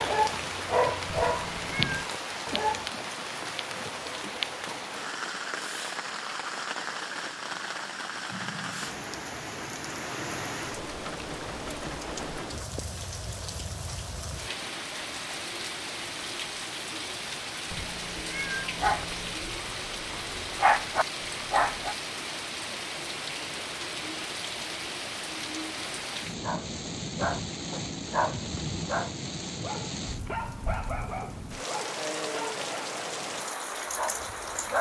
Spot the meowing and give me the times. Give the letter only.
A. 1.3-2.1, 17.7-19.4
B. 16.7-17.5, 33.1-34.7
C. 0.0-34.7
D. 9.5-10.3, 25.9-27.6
A.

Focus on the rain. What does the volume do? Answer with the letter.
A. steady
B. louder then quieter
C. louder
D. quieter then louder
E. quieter
A.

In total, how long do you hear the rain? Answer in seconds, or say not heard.
35 s.